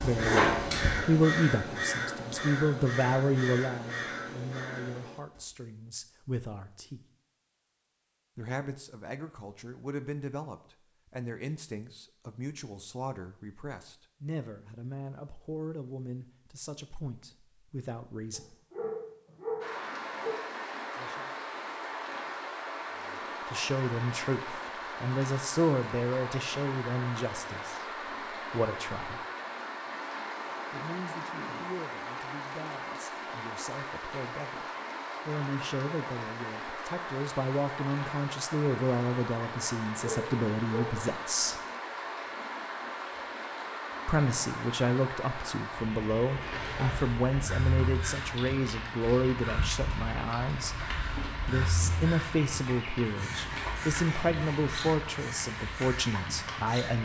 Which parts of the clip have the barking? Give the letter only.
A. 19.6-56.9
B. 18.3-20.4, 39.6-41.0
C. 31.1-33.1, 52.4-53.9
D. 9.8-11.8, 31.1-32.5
B.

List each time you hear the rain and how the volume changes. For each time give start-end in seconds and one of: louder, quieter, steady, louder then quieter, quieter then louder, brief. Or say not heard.
19.6-56.9 steady.